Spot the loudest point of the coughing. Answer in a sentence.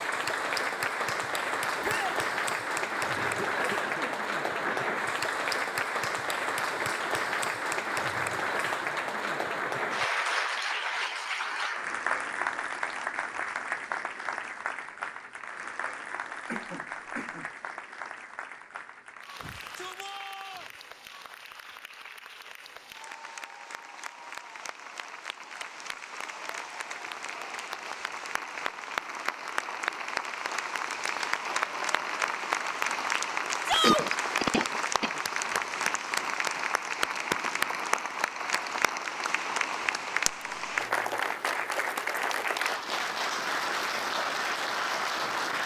The volume of the coughing peaks at 34 seconds.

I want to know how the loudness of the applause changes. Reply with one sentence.
The loudness of the applause goes down, then up.